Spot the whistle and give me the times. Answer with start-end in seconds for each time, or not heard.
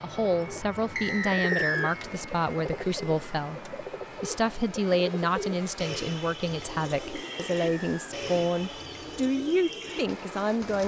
0.9-1.9, 7.2-8.2.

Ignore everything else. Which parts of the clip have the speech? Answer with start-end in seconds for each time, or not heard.
0.0-10.8.